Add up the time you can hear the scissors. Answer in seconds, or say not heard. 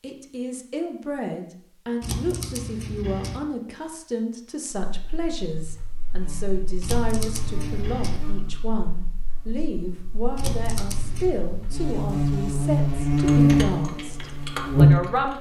4 s.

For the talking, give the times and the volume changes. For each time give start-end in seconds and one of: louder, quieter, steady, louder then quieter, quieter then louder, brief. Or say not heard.
0.0-15.3 steady.